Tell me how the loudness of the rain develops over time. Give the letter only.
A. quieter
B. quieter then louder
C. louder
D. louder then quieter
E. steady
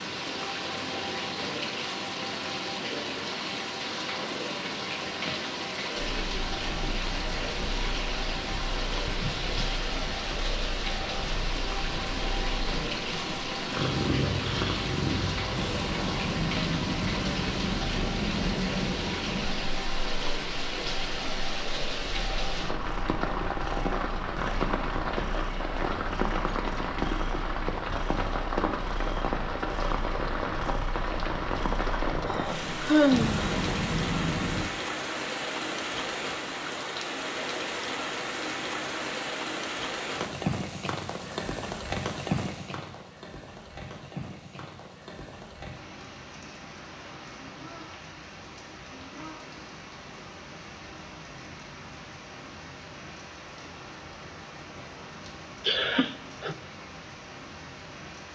A.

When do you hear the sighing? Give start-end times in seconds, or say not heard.
9.1-9.8, 32.3-33.4, 55.6-56.5.